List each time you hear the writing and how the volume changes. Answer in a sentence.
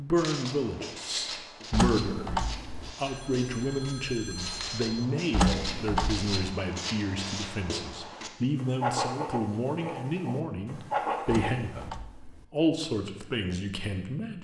You can hear the writing from 0.1 to 11.9 s, getting louder.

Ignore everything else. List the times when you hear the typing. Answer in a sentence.
The typing can be heard from 1.7 to 2.9 s, from 5.3 to 6.3 s and from 11.2 to 12.4 s.